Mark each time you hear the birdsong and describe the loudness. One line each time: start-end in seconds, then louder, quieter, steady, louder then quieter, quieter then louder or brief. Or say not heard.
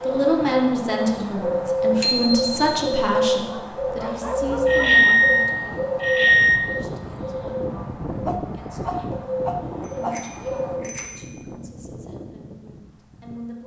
0.0-10.8 quieter.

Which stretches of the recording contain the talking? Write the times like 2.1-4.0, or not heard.
0.0-13.6.